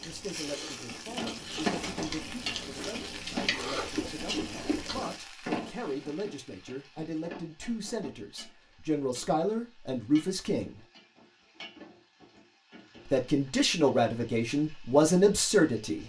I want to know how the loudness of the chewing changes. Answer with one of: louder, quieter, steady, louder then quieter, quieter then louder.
louder.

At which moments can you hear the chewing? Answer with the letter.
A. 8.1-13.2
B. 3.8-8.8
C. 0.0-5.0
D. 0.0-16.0
C.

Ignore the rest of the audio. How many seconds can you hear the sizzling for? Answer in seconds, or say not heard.
16 s.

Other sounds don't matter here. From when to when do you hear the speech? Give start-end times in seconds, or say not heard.
0.0-10.8, 13.1-16.0.